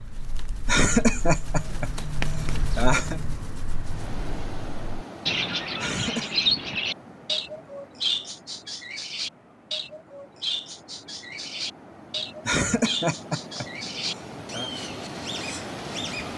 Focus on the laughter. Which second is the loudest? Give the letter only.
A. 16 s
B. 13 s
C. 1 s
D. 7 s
C.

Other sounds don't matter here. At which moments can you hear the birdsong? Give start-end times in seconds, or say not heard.
0.0-16.3.